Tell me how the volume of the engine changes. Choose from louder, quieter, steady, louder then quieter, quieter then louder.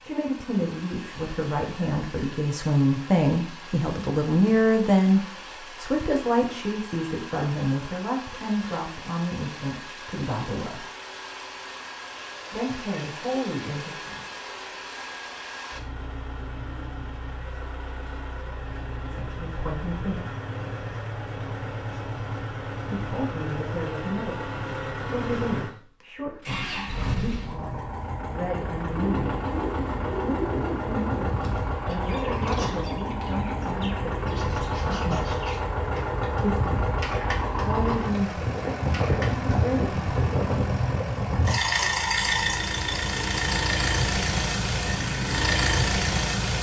louder.